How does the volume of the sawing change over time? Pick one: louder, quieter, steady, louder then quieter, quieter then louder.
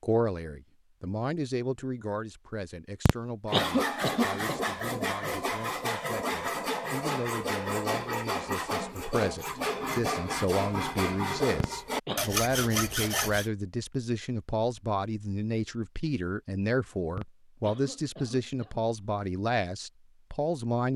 steady.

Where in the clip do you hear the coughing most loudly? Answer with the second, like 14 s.
4 s.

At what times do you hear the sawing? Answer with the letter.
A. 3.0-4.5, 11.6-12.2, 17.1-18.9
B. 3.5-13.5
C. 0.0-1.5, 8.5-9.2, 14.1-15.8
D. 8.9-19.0
B.